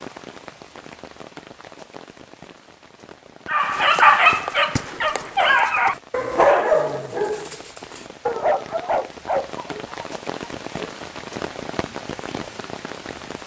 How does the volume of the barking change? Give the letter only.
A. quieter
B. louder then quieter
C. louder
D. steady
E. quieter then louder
A.